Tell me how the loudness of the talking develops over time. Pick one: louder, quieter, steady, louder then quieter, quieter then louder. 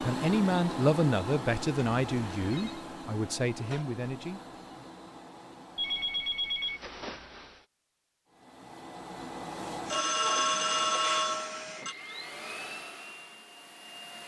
quieter.